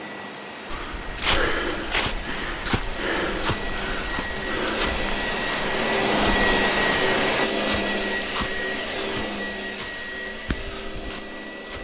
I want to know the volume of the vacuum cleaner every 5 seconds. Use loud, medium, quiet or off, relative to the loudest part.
medium, loud, medium.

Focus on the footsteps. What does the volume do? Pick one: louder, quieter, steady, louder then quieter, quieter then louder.
quieter.